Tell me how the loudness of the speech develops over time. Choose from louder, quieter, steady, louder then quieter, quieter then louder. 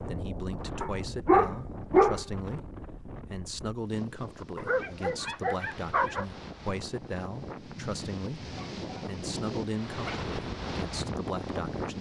steady.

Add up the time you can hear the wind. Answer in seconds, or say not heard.
12 s.